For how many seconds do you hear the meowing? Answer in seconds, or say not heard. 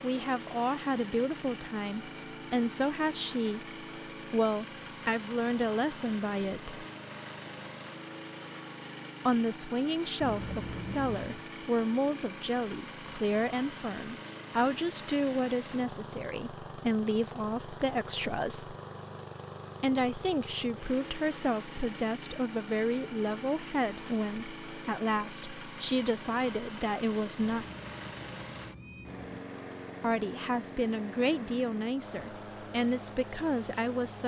3 s.